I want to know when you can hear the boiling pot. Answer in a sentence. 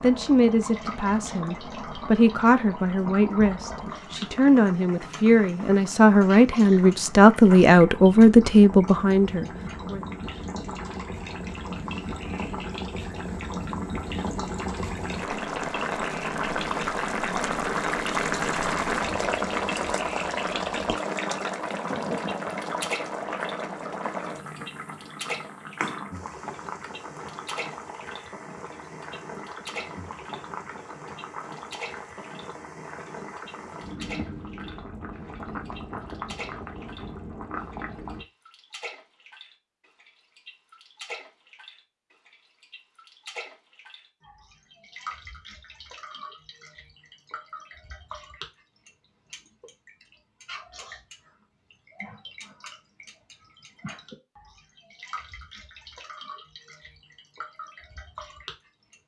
You can hear the boiling pot from 0.0 to 38.2 s.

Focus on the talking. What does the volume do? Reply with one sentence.
The loudness of the talking goes up.